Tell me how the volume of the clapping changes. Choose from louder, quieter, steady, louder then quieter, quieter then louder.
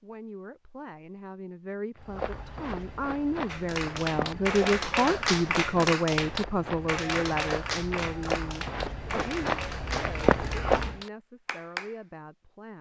quieter.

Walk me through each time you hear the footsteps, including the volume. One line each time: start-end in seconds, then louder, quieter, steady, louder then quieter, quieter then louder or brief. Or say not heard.
1.9-11.0 louder.